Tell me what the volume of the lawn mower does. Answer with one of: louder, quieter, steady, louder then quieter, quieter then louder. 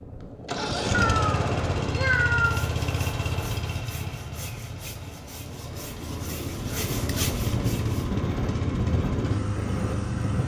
quieter then louder.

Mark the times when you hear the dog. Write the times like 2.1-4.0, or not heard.
not heard.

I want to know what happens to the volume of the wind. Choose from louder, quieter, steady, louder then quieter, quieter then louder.
quieter then louder.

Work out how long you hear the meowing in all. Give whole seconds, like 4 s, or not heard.
2 s.